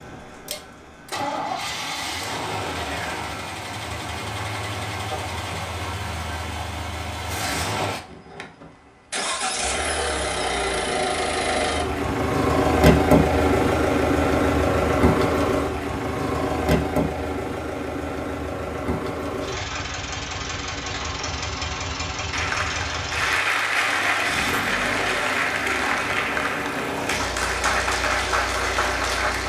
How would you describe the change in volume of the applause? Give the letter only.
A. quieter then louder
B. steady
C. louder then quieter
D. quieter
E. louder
B.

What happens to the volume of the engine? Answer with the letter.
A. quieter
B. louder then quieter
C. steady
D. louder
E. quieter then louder
B.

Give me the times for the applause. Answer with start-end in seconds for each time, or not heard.
22.3-29.4.